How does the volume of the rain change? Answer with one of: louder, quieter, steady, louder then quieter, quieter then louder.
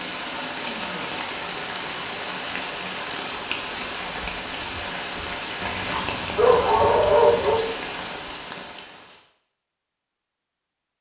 steady.